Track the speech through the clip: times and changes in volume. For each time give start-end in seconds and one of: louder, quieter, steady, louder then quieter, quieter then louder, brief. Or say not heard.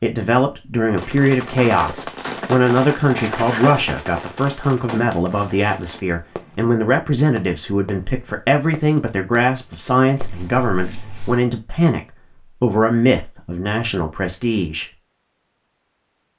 0.0-14.8 steady.